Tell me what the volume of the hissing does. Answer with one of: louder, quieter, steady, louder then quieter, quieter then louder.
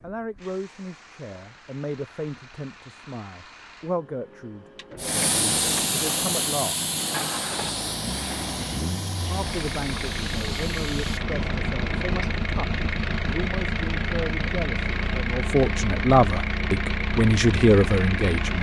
quieter.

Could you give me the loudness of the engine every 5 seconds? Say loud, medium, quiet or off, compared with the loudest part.
quiet, medium, loud, loud.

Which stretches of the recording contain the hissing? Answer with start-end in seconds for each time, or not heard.
5.0-12.2.